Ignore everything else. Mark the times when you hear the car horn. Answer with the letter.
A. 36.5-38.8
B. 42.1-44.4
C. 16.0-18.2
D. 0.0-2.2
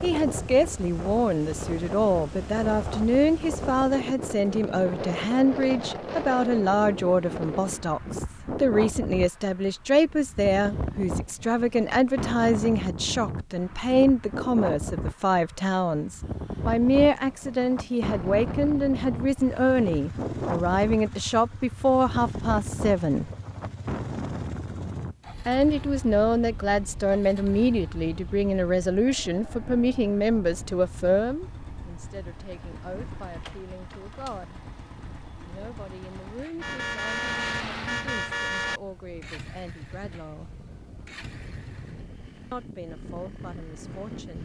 A.